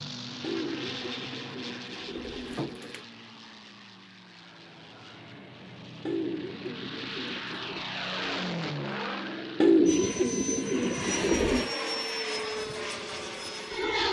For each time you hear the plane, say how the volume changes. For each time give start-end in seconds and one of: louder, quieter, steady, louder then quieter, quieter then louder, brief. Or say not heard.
0.0-14.0 quieter then louder.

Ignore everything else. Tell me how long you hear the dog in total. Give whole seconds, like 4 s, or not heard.
not heard.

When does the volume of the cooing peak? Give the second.
10 s.